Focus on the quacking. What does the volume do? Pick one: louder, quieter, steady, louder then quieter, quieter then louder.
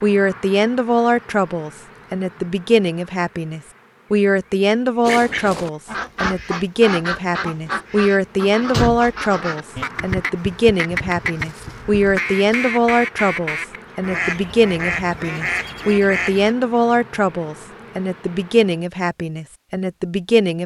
steady.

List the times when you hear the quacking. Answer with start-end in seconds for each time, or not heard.
5.0-16.6.